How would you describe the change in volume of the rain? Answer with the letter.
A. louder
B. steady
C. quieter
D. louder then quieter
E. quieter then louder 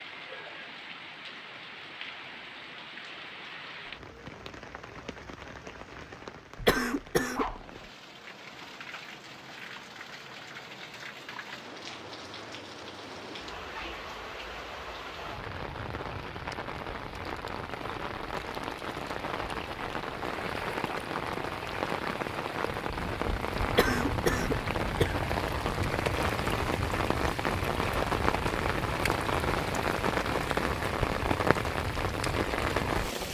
A.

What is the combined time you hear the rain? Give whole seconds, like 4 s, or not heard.
33 s.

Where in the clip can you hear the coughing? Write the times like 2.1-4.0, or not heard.
6.5-7.6, 23.7-25.2.